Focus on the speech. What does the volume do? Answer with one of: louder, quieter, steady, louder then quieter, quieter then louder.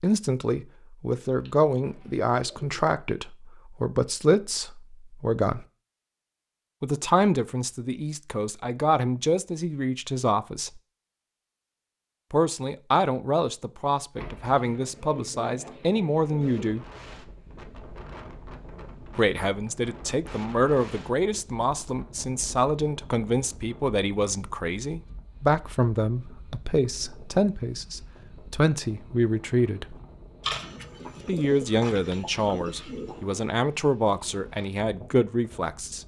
steady.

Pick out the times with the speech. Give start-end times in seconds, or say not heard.
0.0-5.7, 6.8-10.8, 12.3-16.9, 19.1-29.9, 31.2-36.0.